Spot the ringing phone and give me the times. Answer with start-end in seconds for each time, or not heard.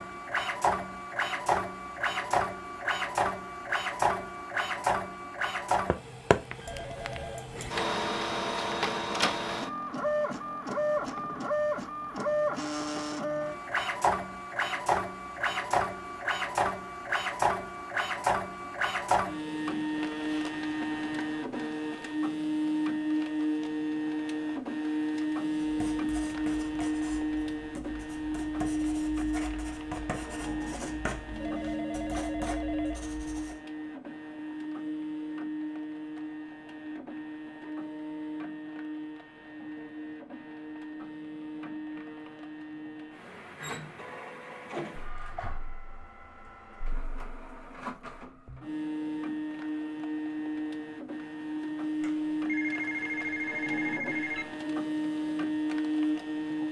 6.7-7.6, 31.3-33.1, 52.0-54.5.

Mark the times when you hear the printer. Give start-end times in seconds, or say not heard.
0.0-56.6.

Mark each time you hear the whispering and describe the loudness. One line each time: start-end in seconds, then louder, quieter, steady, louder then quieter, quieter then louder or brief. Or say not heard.
not heard.